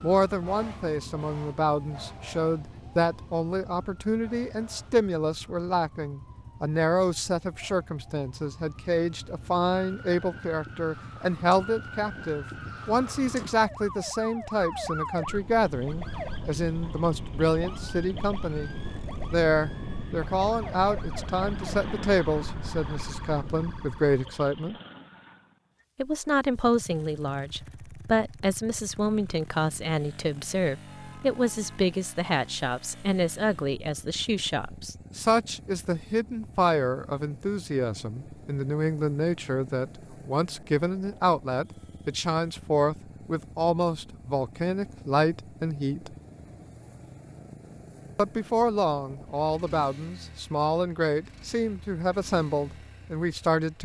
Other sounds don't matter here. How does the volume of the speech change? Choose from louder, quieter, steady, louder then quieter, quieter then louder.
steady.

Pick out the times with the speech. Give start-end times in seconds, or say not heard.
0.0-18.7, 19.3-24.8, 25.9-46.1, 48.1-53.8.